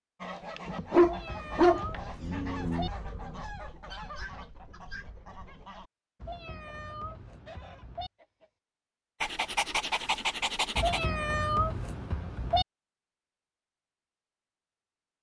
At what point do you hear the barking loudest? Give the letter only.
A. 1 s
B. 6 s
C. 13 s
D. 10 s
A.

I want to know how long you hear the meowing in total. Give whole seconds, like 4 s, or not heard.
6 s.